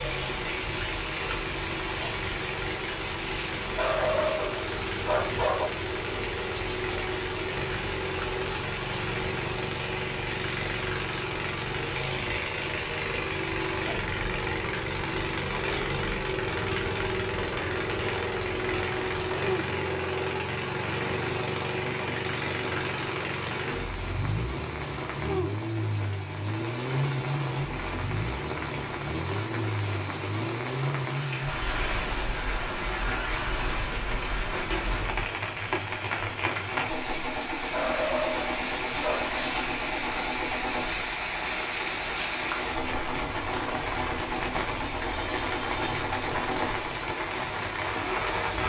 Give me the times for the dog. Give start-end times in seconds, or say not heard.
3.6-5.7, 37.6-39.4.